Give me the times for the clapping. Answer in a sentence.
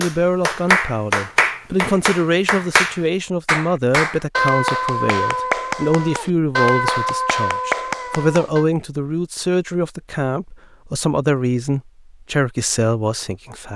The clapping can be heard from 0.0 to 8.7 s.